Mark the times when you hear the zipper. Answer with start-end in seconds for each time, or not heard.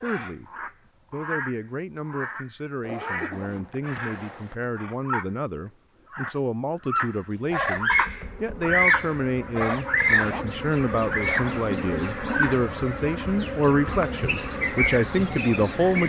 2.8-4.8, 10.1-10.6.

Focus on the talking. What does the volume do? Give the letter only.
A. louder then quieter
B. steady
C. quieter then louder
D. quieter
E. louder
E.